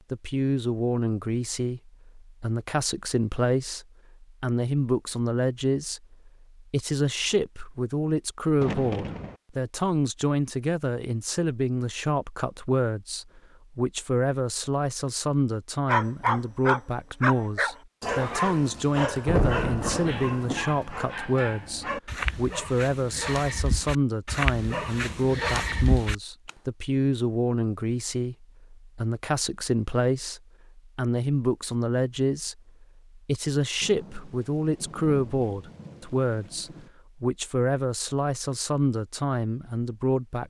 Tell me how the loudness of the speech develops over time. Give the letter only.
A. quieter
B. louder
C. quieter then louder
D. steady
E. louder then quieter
D.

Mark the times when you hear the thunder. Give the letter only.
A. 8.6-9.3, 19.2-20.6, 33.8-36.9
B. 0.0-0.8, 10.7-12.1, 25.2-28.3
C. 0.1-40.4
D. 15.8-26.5
A.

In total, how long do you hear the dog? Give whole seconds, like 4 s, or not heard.
11 s.